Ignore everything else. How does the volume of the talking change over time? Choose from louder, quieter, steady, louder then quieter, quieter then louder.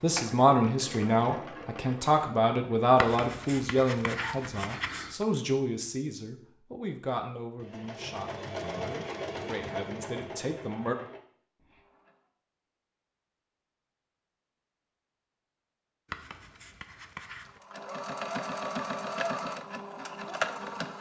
quieter.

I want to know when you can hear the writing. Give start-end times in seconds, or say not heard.
3.0-5.2, 16.1-17.6.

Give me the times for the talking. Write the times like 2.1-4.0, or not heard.
0.0-10.9.